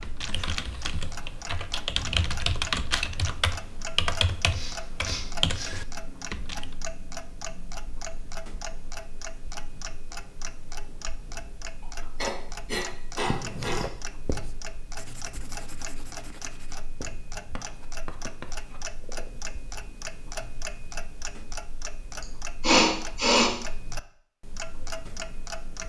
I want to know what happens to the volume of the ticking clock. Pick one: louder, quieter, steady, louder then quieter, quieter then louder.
steady.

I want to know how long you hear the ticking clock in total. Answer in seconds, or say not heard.
26 s.